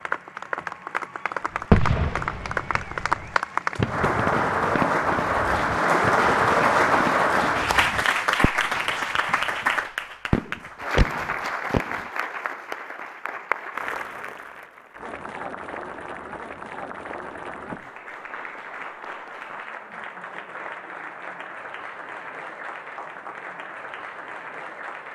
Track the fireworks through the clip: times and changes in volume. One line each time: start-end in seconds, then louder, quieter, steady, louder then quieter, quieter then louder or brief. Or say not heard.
1.7-8.9 louder then quieter
10.3-12.0 brief.